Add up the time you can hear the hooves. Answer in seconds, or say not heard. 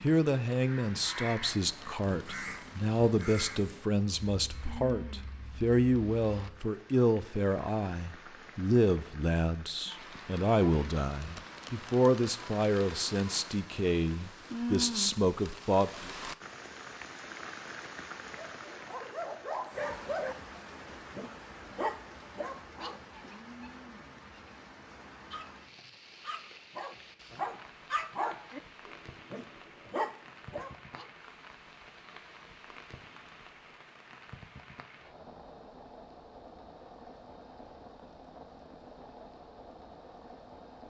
not heard.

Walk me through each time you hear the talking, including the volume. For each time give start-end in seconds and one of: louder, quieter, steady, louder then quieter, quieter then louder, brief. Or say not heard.
0.0-16.1 steady.